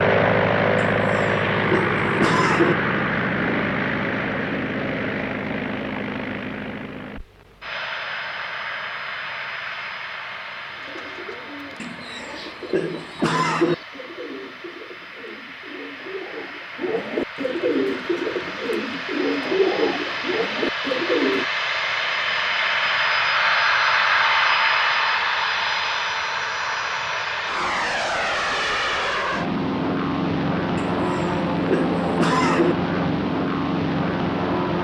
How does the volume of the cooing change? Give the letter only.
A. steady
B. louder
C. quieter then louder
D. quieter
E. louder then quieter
B.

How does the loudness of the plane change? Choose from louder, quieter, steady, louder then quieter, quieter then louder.
quieter then louder.